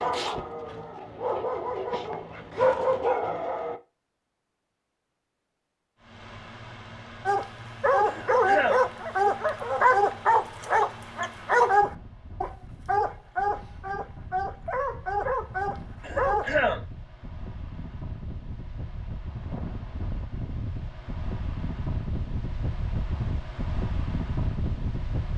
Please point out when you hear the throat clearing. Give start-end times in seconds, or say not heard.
8.1-8.8, 16.0-16.8.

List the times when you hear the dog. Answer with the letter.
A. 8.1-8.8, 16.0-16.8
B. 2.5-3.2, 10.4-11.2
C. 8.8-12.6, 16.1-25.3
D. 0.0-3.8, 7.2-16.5
D.